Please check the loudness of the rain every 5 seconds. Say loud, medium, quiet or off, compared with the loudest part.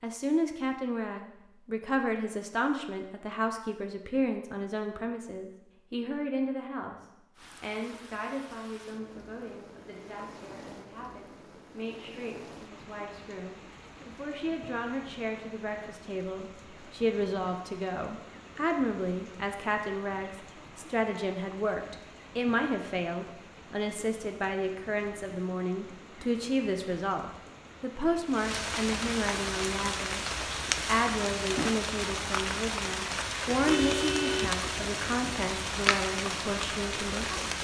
off, quiet, quiet, quiet, quiet, medium, loud, loud.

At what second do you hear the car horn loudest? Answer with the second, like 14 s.
34 s.